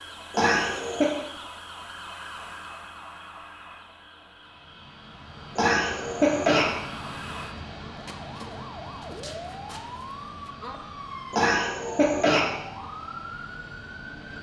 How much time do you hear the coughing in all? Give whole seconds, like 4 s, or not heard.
3 s.